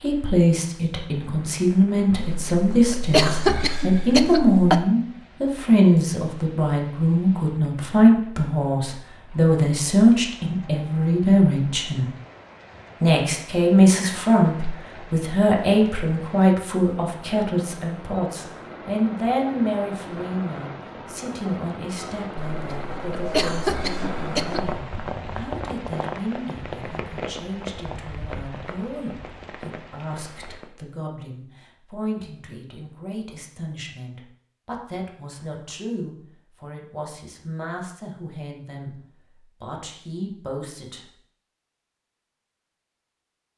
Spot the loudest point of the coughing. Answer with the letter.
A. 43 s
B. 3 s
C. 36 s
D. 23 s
B.